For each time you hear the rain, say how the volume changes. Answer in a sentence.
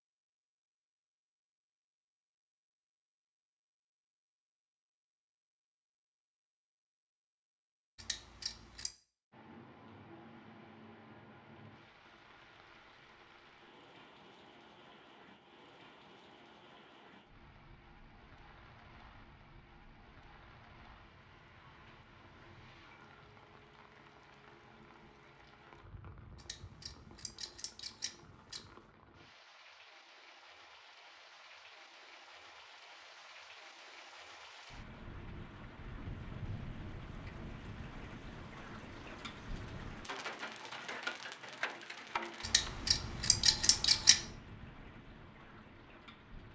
You can hear the rain from 9.3 to 46.5 s, getting louder.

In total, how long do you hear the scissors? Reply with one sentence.
You can hear the scissors for 5 seconds altogether.